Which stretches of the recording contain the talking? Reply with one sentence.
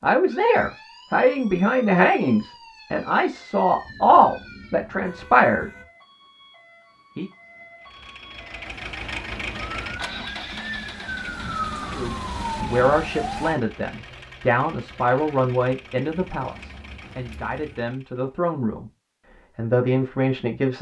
The talking can be heard from 0.0 to 5.7 s, from 11.9 to 18.9 s and from 19.6 to 20.7 s.